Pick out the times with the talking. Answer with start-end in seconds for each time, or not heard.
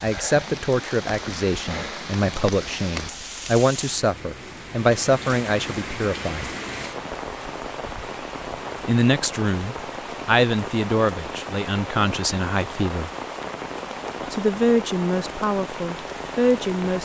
0.0-6.5, 8.8-13.1, 14.3-16.9.